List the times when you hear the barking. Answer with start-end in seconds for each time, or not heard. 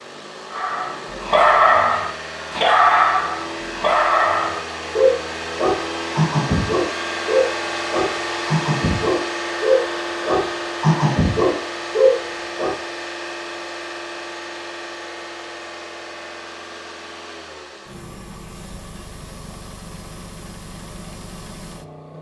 0.5-12.8.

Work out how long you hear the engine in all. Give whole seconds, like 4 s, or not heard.
22 s.